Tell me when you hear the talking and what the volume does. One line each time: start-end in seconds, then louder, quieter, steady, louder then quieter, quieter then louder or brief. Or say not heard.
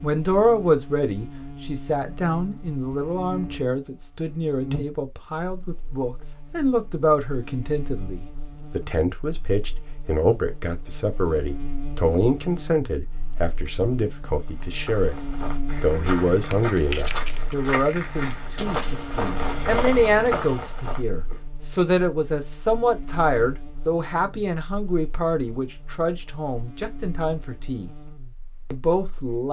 0.0-27.9 steady
28.7-29.4 brief.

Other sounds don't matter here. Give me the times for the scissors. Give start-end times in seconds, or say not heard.
16.4-17.6.